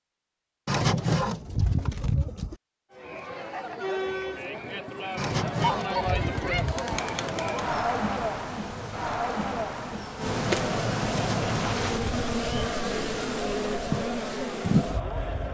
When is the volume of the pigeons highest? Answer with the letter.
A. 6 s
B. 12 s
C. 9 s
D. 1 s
D.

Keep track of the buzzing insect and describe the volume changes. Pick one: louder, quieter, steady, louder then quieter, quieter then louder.
louder.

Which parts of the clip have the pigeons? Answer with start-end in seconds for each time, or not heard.
0.7-2.5, 5.2-7.0, 11.1-12.7.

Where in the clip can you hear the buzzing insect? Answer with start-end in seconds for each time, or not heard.
6.8-15.4.